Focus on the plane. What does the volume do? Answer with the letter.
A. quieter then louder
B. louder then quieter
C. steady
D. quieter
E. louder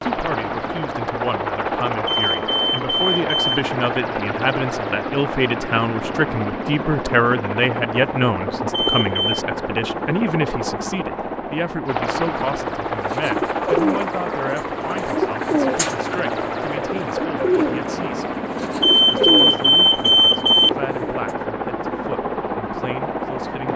C.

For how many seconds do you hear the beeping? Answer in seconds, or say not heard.
4 s.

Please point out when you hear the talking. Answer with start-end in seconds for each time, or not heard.
0.0-18.4, 19.1-23.7.